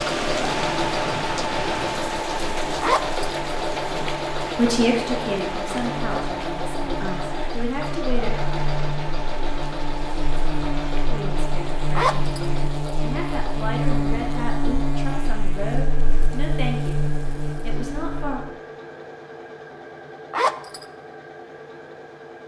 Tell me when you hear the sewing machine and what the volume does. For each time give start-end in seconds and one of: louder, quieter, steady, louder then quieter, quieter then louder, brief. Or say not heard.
0.0-22.4 quieter.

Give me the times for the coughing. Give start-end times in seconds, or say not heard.
not heard.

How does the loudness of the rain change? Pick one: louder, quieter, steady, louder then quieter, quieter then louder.
quieter.